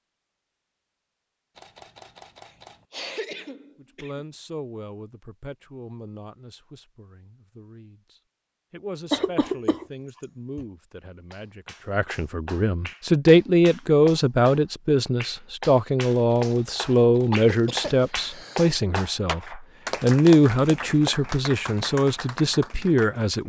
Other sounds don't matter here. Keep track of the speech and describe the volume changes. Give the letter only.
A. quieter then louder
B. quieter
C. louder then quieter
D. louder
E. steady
D.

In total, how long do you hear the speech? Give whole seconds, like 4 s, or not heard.
20 s.